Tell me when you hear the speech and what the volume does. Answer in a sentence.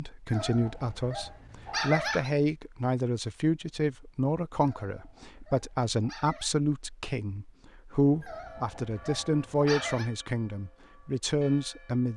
The speech can be heard from 0.0 to 12.1 s, at a steady volume.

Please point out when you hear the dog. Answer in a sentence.
You can hear the dog from 0.2 to 2.3 s, from 4.6 to 6.5 s and from 8.2 to 10.1 s.